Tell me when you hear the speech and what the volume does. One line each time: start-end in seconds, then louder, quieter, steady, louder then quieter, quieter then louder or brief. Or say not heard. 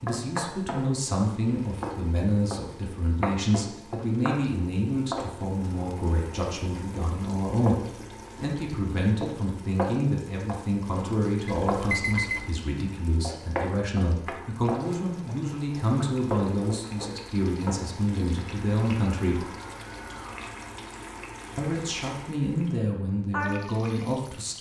0.0-19.4 steady
21.6-24.5 brief.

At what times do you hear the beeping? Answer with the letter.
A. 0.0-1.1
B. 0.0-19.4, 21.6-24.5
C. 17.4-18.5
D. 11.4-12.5
D.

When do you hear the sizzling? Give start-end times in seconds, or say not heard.
0.0-24.5.